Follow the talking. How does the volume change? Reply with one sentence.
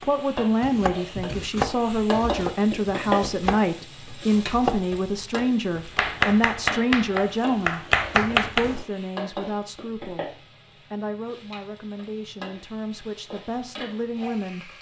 The loudness of the talking goes down.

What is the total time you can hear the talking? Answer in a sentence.
You can hear the talking for 15 seconds altogether.